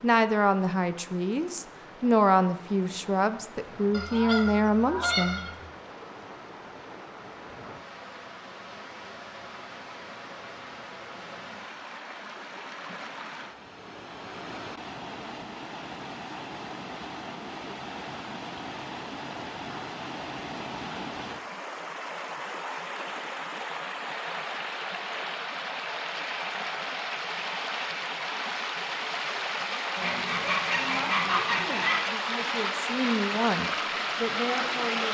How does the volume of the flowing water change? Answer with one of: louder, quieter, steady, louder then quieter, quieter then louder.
louder.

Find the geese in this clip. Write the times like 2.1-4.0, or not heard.
3.9-5.7, 30.0-32.0.